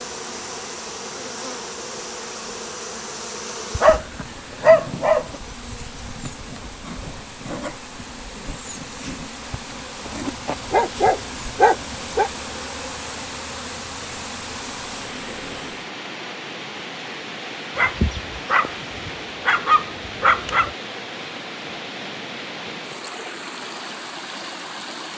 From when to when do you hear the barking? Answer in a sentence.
You can hear the barking from 3.8 to 5.3 s, from 10.1 to 12.3 s and from 17.8 to 20.7 s.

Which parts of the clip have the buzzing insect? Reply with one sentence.
You can hear the buzzing insect from 0.0 to 15.9 s.